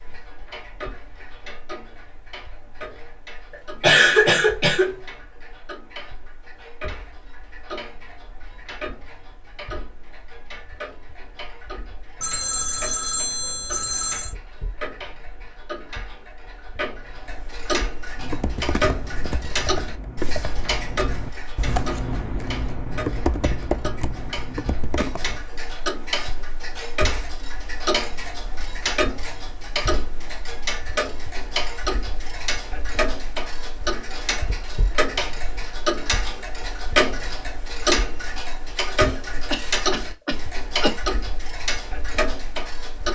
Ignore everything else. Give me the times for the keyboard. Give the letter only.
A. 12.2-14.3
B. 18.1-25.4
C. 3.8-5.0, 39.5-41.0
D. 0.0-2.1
B.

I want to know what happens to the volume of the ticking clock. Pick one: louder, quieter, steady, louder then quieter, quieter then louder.
louder.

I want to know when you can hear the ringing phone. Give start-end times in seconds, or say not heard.
12.2-14.3.